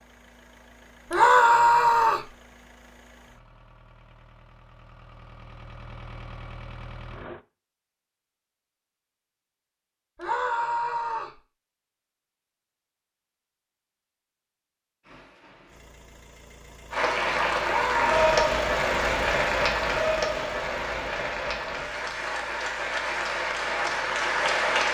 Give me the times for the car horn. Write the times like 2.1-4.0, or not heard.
not heard.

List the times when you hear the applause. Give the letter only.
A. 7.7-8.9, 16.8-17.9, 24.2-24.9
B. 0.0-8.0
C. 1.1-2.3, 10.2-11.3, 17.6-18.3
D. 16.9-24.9
D.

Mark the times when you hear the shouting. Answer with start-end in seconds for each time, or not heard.
1.1-2.3, 10.2-11.3, 17.6-18.3.